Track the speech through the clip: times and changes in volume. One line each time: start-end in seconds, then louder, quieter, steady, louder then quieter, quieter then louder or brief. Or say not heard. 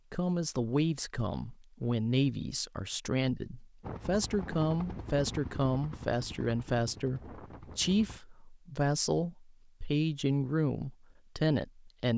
0.1-12.1 steady.